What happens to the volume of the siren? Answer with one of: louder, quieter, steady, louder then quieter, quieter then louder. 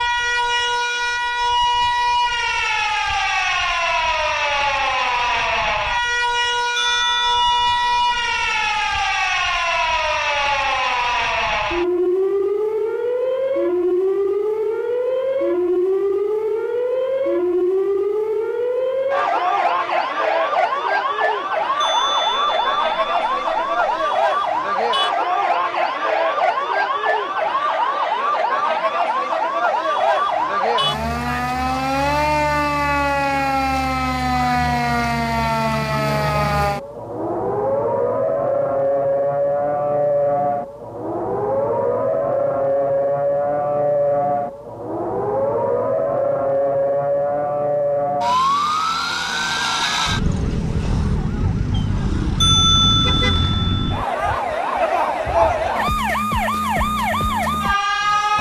steady.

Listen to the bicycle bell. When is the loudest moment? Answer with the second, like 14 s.
53 s.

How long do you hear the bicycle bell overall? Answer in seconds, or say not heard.
6 s.